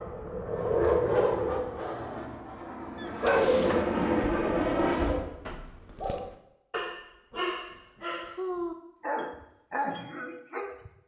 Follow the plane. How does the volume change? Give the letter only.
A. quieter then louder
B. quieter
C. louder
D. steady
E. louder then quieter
A.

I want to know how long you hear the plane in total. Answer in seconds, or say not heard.
5 s.